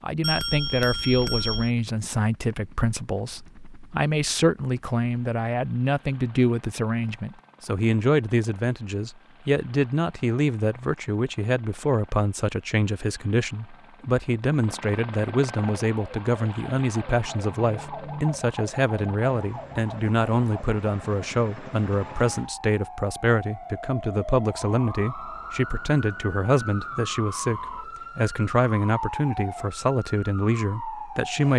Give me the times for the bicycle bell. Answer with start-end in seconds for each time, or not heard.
0.2-1.7.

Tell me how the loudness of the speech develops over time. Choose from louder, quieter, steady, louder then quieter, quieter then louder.
steady.